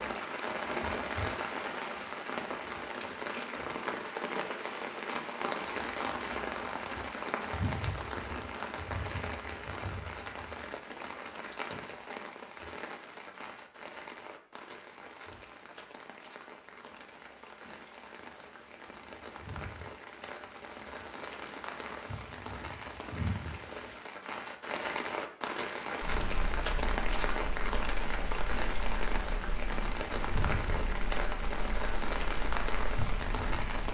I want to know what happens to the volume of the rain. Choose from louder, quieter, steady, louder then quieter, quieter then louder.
quieter then louder.